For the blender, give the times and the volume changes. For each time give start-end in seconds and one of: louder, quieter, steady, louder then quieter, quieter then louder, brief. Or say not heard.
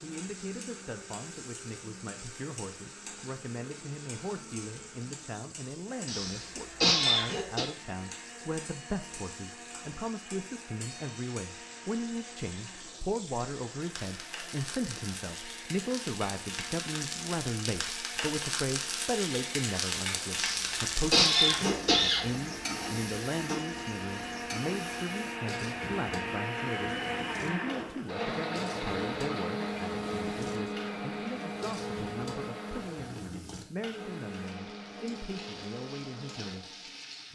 0.0-37.0 louder.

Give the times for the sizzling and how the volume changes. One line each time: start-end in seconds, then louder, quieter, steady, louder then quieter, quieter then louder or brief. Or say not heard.
0.0-37.2 louder then quieter.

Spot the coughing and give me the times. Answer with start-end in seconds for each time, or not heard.
6.0-7.7, 20.4-22.2.